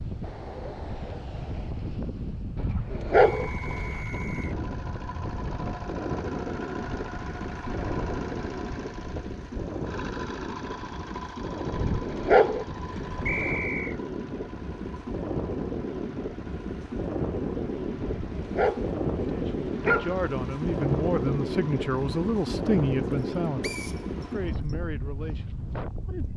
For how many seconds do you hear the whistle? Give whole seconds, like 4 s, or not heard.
3 s.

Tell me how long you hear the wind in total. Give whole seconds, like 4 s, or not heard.
26 s.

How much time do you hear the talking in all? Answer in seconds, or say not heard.
7 s.